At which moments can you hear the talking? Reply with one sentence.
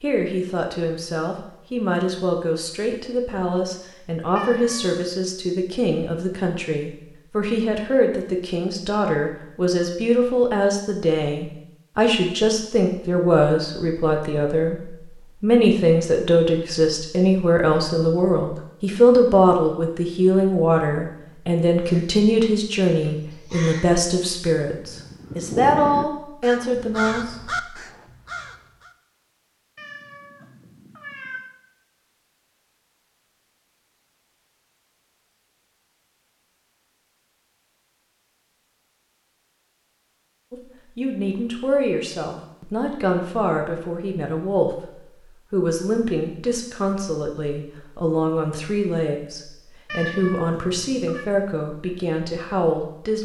The talking can be heard from 0.0 to 27.8 s and from 40.5 to 53.2 s.